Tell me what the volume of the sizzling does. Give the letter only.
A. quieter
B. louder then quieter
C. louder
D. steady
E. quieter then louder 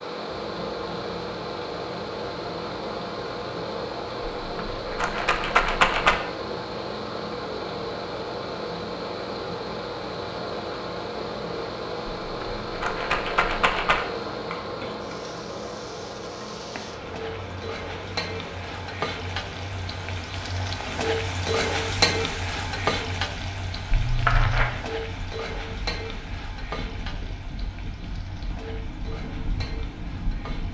B.